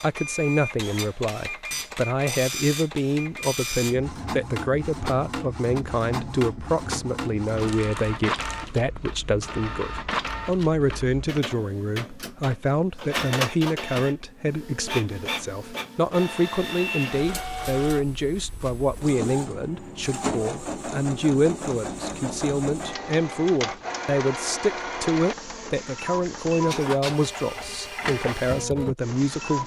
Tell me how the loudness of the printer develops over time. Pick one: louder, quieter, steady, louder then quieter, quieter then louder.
steady.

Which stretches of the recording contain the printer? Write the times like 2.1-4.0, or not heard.
0.0-29.6.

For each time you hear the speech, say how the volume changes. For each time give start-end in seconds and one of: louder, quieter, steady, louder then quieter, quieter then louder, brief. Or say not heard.
0.0-29.6 steady.